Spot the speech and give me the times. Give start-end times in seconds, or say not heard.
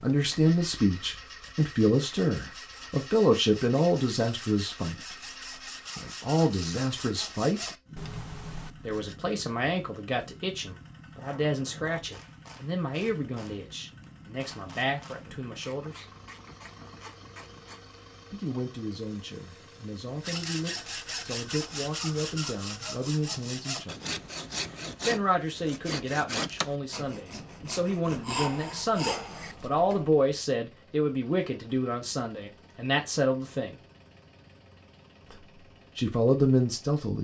0.0-5.2, 6.0-7.7, 8.8-16.1, 18.3-24.2, 25.1-33.8, 35.3-37.2.